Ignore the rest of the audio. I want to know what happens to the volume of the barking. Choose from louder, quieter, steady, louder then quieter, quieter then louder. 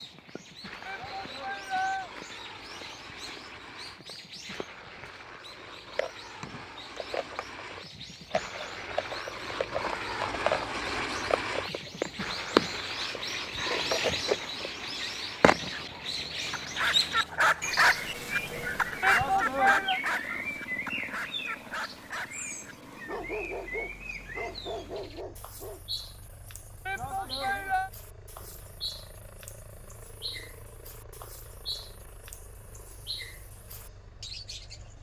quieter.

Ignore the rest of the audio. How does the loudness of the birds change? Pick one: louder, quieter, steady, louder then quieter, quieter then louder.
louder then quieter.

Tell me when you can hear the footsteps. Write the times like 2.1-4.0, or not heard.
not heard.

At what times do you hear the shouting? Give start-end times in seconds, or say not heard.
0.8-2.1, 19.0-20.0, 26.9-27.9.